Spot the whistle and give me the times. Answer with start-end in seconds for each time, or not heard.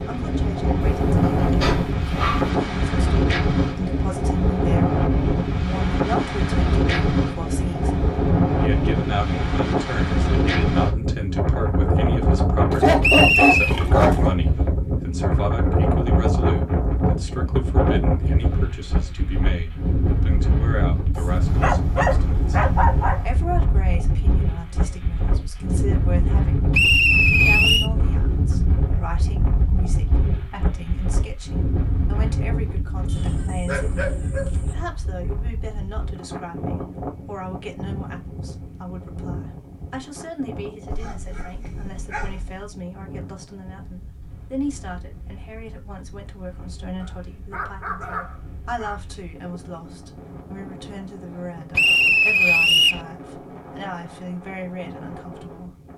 13.0-13.8, 26.7-27.9, 51.8-53.0.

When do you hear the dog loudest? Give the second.
13 s.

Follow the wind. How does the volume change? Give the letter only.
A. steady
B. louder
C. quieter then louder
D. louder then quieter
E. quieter
E.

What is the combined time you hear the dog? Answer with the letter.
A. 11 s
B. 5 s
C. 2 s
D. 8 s
A.